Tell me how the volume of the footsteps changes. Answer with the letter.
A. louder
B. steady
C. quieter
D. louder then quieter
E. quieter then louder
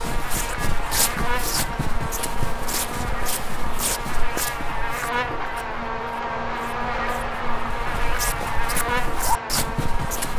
E.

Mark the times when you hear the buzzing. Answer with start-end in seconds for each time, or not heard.
0.0-10.3.